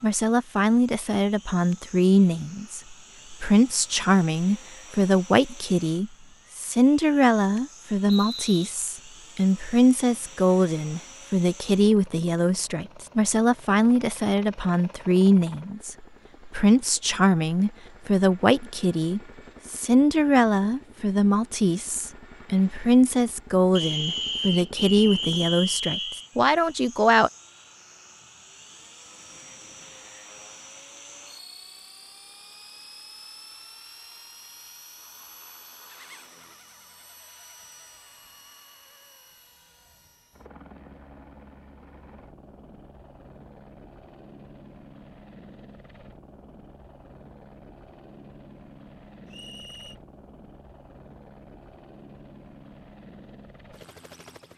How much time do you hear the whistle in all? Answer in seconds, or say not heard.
4 s.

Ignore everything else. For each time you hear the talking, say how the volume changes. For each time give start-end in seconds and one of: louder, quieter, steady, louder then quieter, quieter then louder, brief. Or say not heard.
0.0-27.3 steady.